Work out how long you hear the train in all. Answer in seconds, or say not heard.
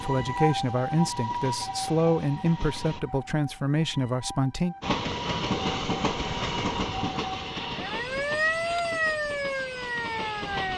9 s.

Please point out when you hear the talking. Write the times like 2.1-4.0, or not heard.
0.0-4.8.